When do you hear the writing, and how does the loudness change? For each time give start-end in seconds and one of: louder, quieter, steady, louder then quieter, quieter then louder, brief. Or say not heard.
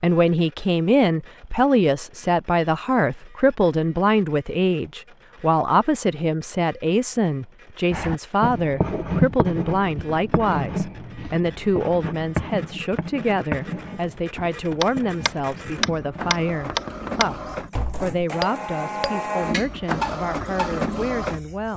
7.9-17.3 quieter.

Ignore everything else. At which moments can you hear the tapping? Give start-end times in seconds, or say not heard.
14.8-20.8.